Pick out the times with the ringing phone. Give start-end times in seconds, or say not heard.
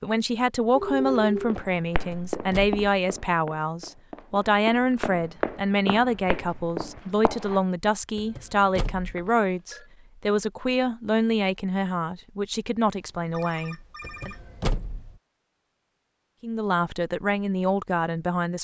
0.7-1.6, 9.2-9.9, 12.9-15.2.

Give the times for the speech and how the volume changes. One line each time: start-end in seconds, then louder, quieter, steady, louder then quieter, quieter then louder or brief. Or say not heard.
0.0-14.3 steady
16.4-18.5 brief.